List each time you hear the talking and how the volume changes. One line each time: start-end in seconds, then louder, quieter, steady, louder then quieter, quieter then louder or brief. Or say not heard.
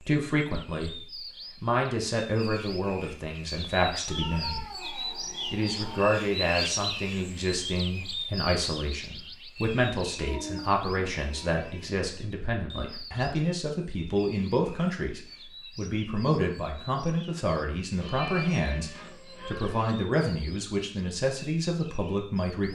0.0-22.7 steady.